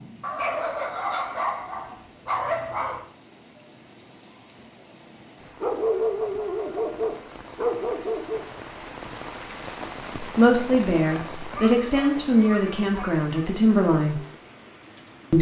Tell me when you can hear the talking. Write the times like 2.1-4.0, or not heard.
10.2-14.2.